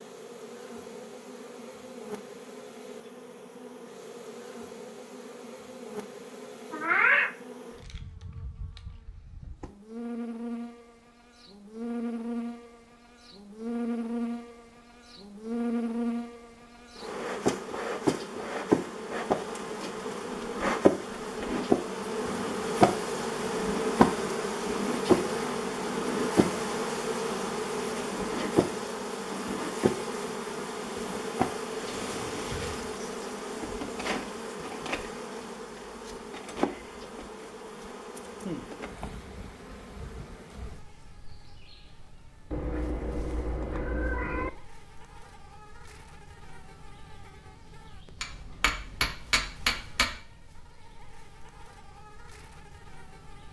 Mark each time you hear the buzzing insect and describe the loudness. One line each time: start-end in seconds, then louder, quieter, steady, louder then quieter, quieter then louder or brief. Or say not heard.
0.0-53.4 louder then quieter.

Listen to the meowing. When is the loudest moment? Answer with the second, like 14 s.
7 s.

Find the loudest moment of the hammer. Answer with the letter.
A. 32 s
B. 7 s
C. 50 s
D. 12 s
C.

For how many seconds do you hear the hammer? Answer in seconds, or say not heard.
2 s.